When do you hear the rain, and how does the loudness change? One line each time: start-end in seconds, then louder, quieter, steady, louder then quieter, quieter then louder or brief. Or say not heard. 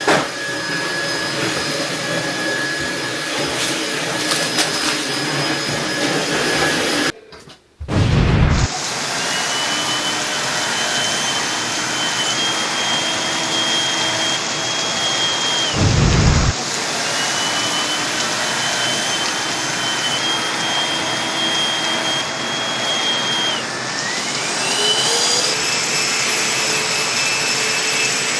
8.4-28.3 steady.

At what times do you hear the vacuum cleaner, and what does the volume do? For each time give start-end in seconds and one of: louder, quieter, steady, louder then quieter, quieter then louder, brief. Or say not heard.
0.0-28.3 steady.